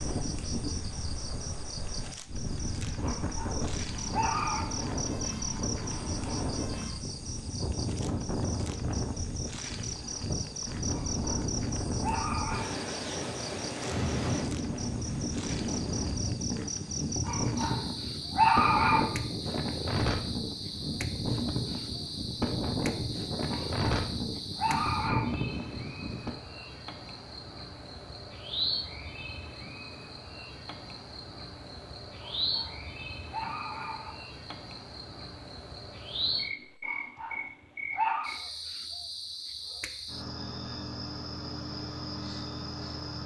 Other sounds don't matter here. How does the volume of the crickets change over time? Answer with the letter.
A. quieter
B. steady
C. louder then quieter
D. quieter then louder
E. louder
B.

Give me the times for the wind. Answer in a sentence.
The wind can be heard from 0.0 to 26.4 s.